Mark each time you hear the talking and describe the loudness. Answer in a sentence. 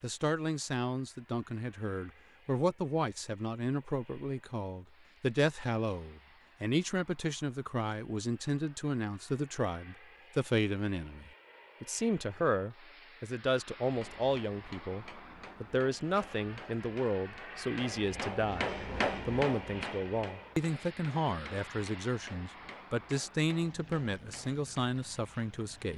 The talking can be heard from 0.0 to 25.9 s, at a steady volume.